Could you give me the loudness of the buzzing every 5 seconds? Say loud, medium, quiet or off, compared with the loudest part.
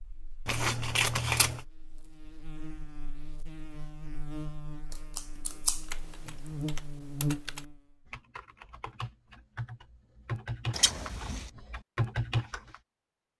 medium, loud, off.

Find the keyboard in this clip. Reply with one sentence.
The keyboard can be heard from 5.9 to 12.8 s.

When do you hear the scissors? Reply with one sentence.
You can hear the scissors from 0.5 to 1.6 s, from 4.9 to 6.3 s and from 10.7 to 11.5 s.